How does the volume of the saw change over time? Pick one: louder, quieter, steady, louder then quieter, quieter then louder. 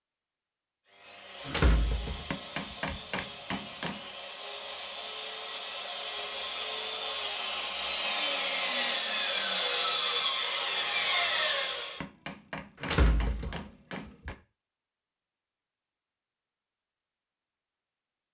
louder.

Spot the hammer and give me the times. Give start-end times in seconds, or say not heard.
2.3-4.0, 12.0-14.3.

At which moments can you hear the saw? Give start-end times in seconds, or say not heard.
0.8-12.0.